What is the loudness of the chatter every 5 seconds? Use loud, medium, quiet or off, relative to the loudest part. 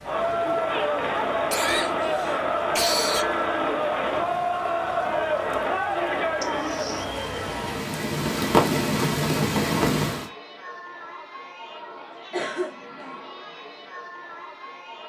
loud, loud, quiet.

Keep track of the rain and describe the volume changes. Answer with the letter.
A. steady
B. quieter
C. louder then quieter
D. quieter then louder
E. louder
E.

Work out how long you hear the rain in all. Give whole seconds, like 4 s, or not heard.
10 s.